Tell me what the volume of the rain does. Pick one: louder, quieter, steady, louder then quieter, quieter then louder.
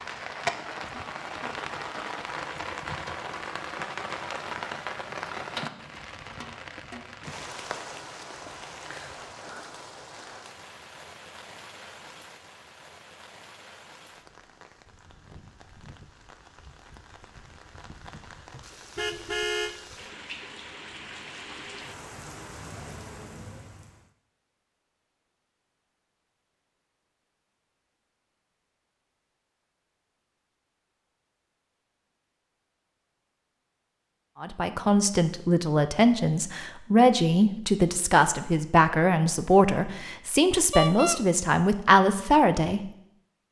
quieter then louder.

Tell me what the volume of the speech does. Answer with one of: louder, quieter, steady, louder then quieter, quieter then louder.
steady.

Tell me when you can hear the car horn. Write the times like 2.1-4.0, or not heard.
18.5-19.8, 40.7-41.2.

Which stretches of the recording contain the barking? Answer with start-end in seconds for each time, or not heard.
not heard.